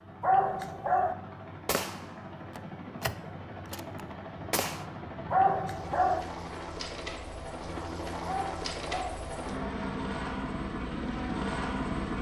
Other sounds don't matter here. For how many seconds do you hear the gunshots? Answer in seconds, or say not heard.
3 s.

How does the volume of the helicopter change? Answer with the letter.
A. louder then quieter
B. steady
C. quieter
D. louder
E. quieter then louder
D.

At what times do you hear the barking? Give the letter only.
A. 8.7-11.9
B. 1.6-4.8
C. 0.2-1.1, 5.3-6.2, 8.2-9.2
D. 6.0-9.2
C.